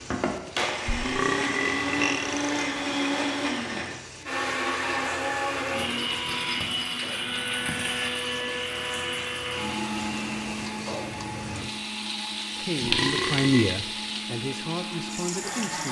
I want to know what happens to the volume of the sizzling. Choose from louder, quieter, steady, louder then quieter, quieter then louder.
louder.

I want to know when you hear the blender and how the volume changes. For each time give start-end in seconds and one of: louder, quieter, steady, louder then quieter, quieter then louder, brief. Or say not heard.
0.0-15.8 quieter.